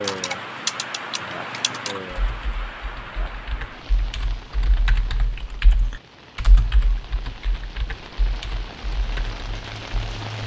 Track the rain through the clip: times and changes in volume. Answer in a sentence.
You can hear the rain from 0.0 to 10.4 s, getting quieter then louder.